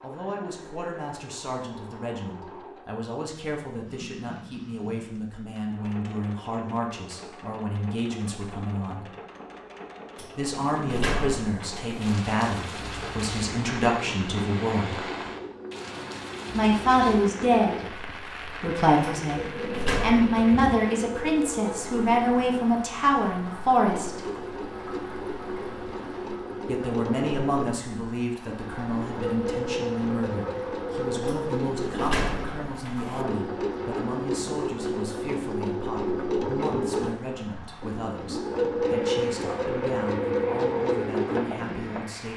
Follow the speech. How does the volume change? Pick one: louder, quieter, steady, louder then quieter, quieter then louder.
louder then quieter.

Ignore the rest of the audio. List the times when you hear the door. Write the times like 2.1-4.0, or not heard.
10.2-11.9, 19.0-20.4, 31.2-33.2.